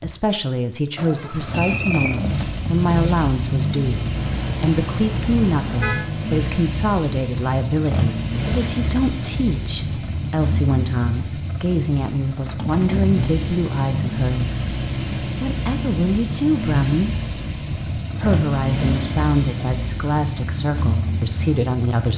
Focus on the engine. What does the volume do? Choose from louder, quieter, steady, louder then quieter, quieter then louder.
steady.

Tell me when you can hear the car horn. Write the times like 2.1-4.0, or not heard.
4.2-6.0.